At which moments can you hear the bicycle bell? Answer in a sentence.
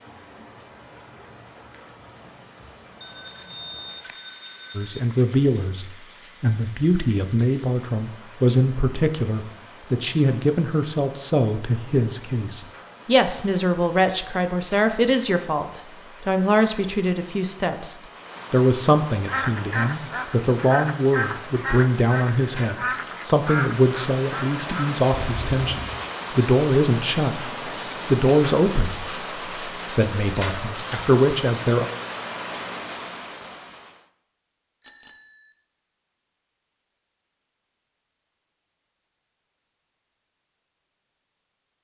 The bicycle bell can be heard from 3.0 to 5.0 s, from 25.1 to 25.9 s and from 34.8 to 35.5 s.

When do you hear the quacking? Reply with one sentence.
The quacking can be heard from 19.2 to 24.9 s.